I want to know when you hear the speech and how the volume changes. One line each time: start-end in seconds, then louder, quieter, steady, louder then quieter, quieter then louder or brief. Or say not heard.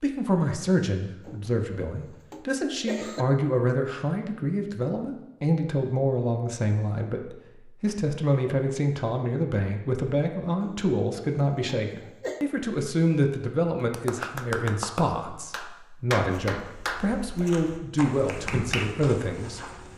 0.0-19.6 steady.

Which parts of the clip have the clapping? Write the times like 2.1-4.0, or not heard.
13.8-17.1, 18.1-18.9.